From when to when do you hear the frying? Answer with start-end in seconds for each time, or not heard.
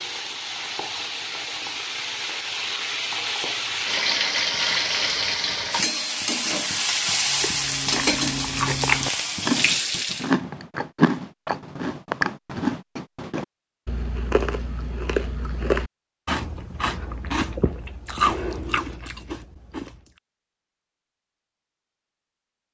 0.0-10.3.